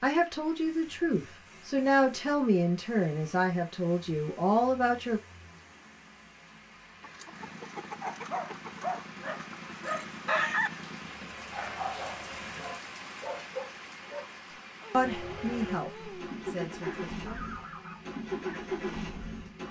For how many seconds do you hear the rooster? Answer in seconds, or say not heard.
4 s.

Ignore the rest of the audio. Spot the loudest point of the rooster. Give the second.
10 s.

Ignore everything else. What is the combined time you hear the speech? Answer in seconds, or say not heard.
8 s.